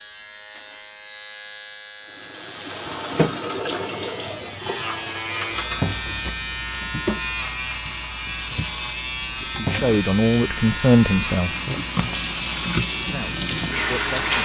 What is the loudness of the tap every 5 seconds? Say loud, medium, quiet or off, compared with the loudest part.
loud, medium, loud.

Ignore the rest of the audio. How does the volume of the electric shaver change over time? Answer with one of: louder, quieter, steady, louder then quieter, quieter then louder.
louder.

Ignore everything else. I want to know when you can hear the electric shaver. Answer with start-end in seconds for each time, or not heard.
0.0-14.3.